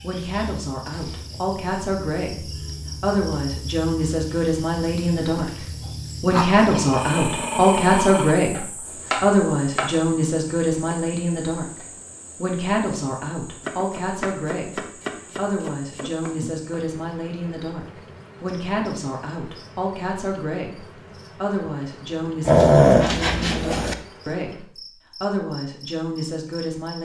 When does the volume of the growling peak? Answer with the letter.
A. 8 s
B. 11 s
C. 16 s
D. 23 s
D.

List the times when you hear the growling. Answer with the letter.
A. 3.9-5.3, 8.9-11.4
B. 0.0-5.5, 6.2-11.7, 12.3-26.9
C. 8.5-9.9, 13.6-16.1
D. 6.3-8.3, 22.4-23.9
D.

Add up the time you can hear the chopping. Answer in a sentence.
The chopping can be heard for 4 seconds in total.